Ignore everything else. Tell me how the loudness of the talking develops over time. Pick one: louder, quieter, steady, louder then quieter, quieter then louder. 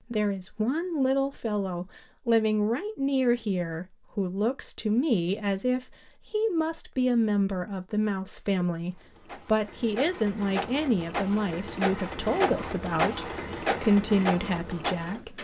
steady.